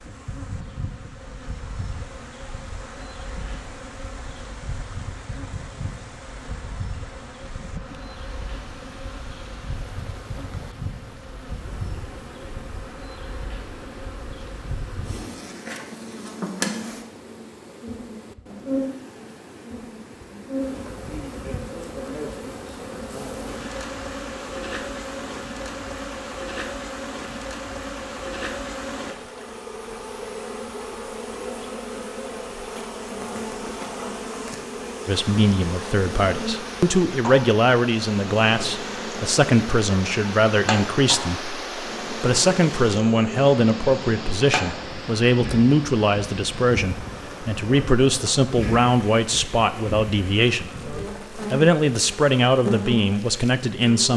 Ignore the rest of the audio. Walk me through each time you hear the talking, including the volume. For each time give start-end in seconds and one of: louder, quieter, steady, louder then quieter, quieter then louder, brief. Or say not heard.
35.0-54.1 steady.